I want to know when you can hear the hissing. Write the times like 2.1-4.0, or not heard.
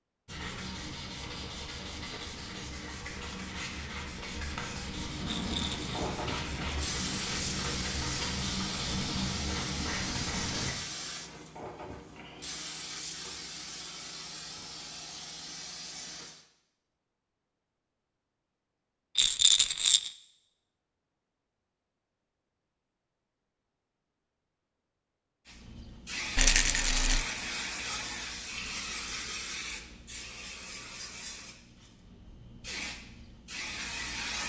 5.1-16.4, 25.4-34.4.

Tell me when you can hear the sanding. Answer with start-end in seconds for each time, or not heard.
0.2-10.8.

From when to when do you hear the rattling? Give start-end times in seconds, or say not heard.
5.2-5.8, 19.1-20.1, 26.4-27.2.